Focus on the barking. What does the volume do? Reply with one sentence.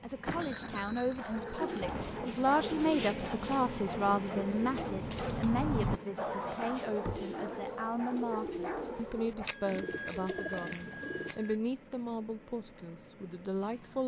The volume of the barking goes up, then down.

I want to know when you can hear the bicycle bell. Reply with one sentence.
You can hear the bicycle bell from 0.2 to 2.2 s, from 6.5 to 7.3 s and from 9.4 to 11.6 s.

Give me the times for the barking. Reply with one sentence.
You can hear the barking from 1.1 to 9.5 s.